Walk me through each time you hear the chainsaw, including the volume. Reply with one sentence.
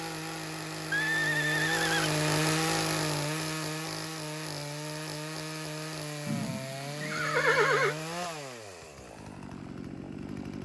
The chainsaw can be heard from 0.0 to 10.6 s, getting quieter.